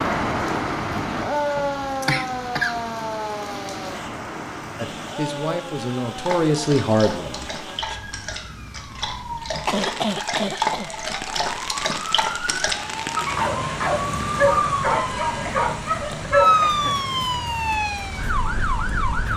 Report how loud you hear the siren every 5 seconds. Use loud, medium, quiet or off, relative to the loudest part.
loud, quiet, medium, loud.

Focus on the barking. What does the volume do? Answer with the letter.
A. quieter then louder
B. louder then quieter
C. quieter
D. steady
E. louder
E.